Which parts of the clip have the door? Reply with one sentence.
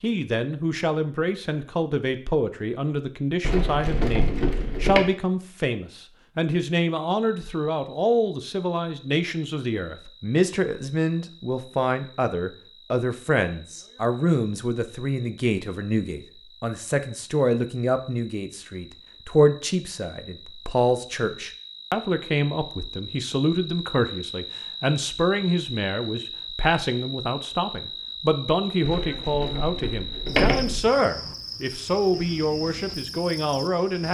You can hear the door from 3.4 to 5.0 s and from 28.9 to 30.8 s.